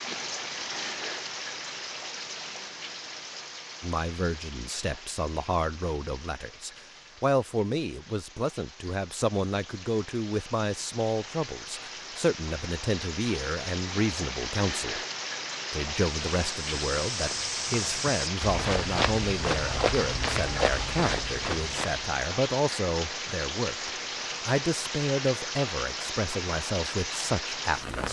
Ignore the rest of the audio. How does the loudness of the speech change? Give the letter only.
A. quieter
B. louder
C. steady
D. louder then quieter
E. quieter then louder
C.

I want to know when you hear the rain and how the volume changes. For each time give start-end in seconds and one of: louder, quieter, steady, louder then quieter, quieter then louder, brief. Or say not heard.
0.0-28.0 quieter then louder.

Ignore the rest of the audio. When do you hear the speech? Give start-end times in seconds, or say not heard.
3.8-15.0, 15.7-28.0.